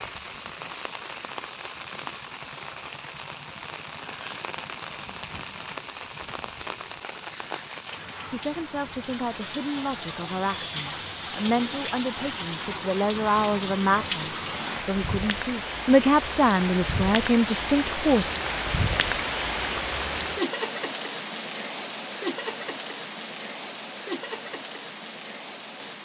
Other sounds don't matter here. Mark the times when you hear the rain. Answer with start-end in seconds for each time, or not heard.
0.0-25.9.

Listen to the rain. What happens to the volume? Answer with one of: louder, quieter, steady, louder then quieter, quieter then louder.
louder.